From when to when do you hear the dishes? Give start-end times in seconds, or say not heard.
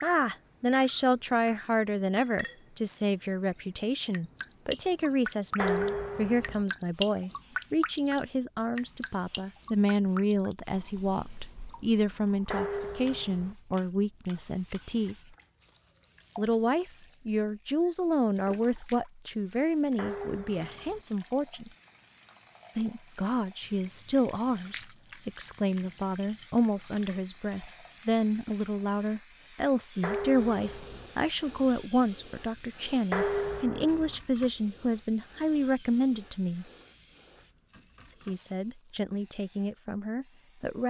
5.5-6.7, 12.5-13.6, 19.9-21.1, 30.0-31.1, 33.1-34.1.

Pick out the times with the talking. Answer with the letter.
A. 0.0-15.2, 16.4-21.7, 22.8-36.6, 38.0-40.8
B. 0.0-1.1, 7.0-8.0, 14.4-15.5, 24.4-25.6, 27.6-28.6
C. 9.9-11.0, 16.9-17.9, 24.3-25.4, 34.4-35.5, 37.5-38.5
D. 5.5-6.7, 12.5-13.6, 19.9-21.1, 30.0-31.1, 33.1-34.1
A.